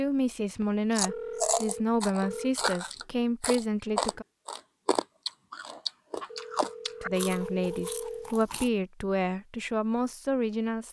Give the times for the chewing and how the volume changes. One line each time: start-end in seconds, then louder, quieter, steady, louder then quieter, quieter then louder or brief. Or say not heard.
0.9-8.7 quieter.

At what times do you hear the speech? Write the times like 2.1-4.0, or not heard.
0.0-4.2, 7.0-10.8.